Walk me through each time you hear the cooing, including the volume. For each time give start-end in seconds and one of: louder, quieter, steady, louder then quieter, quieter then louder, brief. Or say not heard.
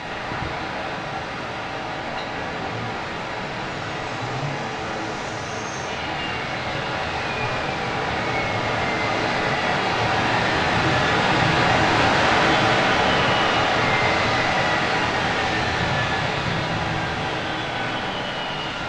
not heard.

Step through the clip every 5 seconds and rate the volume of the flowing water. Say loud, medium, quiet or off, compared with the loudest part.
medium, medium, loud, medium.